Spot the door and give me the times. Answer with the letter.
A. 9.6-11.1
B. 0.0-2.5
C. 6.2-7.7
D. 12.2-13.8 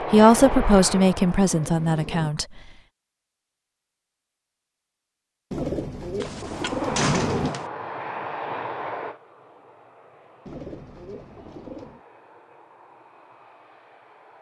C.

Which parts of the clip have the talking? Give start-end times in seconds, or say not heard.
0.0-2.5.